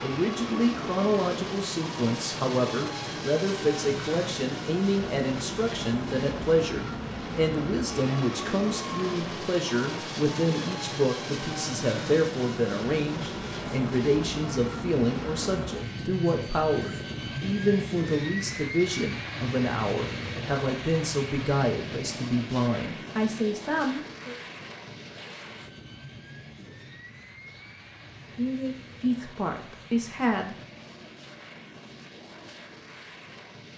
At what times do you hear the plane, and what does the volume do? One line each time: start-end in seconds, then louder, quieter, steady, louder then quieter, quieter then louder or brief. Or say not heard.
0.0-33.7 quieter.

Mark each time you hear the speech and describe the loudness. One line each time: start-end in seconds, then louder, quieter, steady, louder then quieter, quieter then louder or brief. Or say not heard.
0.0-24.4 steady
28.4-30.6 brief.